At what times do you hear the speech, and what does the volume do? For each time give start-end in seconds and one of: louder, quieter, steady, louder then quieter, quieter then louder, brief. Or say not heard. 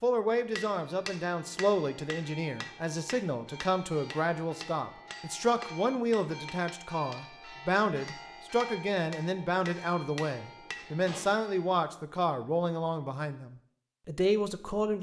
0.0-14.9 steady.